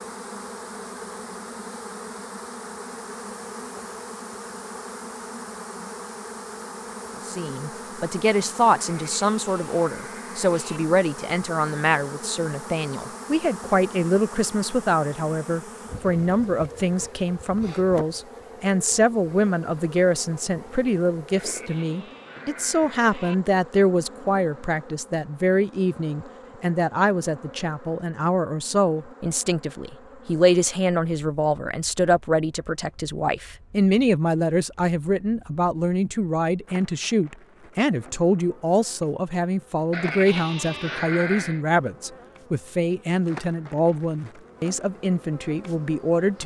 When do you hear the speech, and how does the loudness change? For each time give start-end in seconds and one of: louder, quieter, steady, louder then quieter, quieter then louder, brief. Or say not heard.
7.2-46.4 steady.